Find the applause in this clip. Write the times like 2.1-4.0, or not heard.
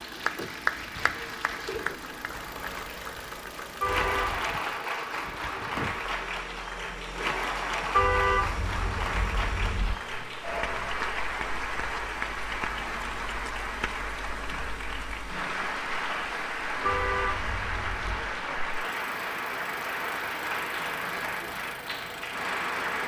0.0-23.0.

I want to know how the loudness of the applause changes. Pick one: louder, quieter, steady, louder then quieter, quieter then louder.
steady.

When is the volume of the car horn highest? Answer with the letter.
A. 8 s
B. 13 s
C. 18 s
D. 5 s
A.